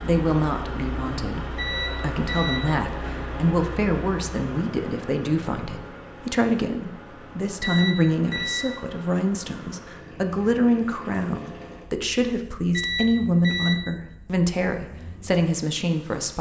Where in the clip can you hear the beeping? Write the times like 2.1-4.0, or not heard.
1.6-2.7, 7.6-8.8, 12.7-13.8.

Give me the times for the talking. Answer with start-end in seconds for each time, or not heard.
0.0-16.3.